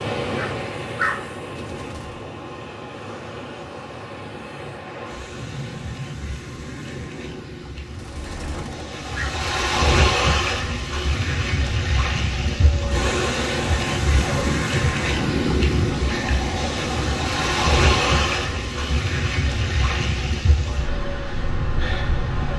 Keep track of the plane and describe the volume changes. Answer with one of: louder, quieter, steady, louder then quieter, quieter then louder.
louder then quieter.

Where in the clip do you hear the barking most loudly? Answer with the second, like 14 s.
1 s.